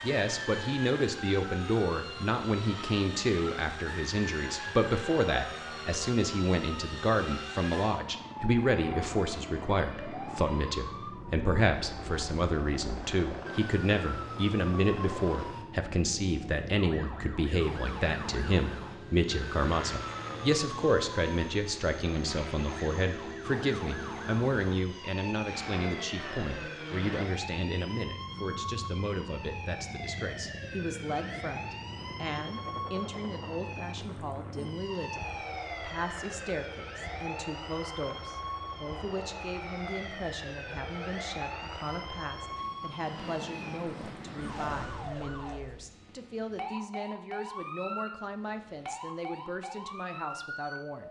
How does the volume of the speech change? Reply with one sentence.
The volume of the speech goes down.